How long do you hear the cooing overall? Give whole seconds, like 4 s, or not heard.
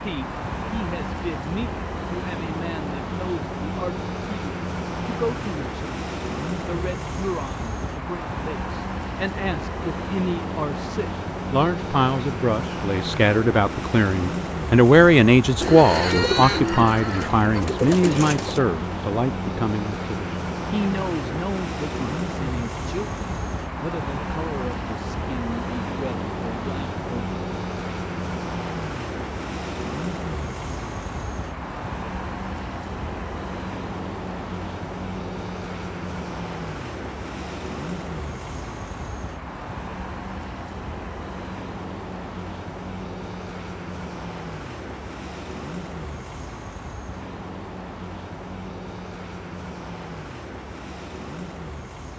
3 s.